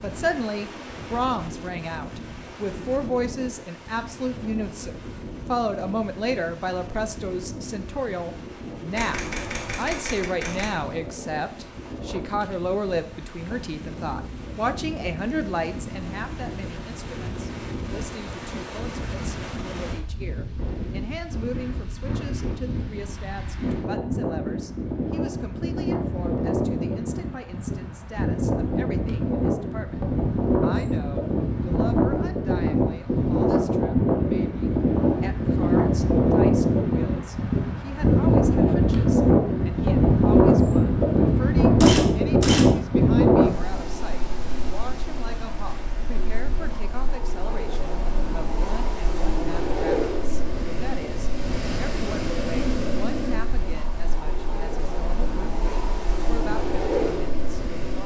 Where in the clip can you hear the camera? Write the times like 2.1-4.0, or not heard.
8.9-10.7, 41.8-42.6.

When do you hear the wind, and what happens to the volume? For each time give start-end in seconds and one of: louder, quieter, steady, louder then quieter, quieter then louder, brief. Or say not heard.
0.0-58.0 louder then quieter.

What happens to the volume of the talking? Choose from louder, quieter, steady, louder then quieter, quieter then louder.
quieter.